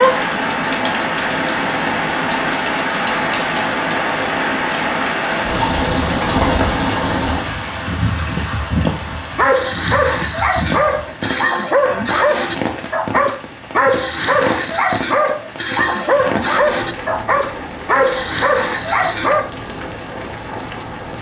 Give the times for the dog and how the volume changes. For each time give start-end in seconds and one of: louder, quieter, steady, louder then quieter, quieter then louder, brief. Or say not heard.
9.3-19.5 steady.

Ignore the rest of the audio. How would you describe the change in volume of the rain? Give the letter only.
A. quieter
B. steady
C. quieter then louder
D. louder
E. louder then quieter
A.